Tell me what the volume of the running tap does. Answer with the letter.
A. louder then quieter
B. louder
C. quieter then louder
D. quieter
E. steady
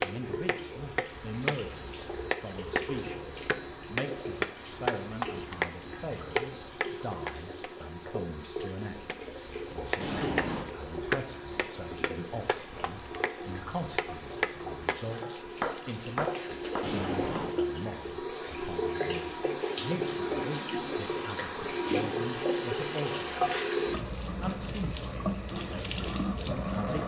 B.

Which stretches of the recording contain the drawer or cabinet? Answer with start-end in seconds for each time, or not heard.
10.0-10.7, 16.8-17.6.